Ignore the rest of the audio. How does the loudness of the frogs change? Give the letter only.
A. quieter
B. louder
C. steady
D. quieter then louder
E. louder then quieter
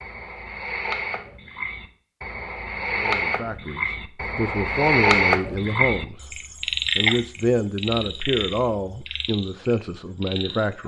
E.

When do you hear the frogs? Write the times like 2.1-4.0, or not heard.
0.0-10.8.